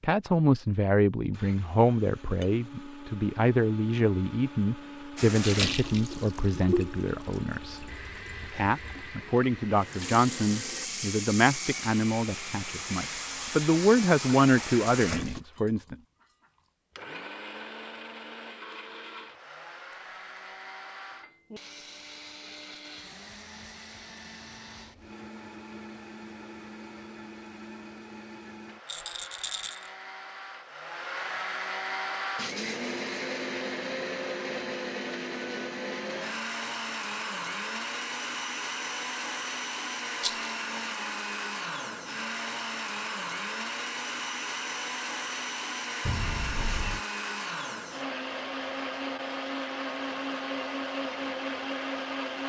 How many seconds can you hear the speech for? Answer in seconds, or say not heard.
16 s.